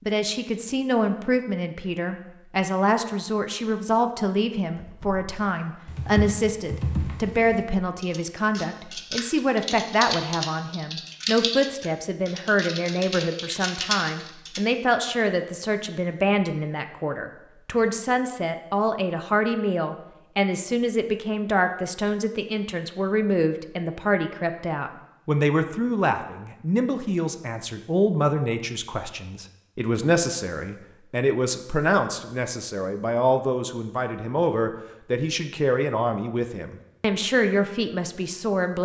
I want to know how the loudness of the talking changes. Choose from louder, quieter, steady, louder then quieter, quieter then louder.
steady.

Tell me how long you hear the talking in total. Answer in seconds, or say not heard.
39 s.